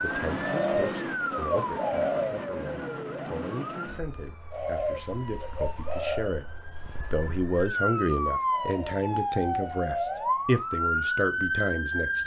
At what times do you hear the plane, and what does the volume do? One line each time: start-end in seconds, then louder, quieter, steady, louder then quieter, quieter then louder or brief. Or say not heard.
not heard.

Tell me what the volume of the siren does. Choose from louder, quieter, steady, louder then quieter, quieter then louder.
quieter then louder.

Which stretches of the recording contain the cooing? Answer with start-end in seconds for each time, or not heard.
0.4-2.5, 4.5-6.3, 8.5-10.3.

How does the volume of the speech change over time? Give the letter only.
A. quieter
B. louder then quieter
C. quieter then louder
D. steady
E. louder
E.